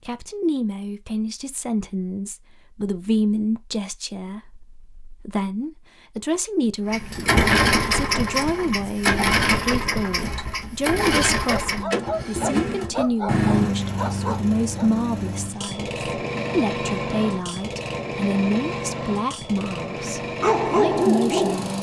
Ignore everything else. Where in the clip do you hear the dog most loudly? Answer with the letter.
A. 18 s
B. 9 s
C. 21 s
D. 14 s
C.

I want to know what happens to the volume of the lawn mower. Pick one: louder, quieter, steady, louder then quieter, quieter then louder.
quieter.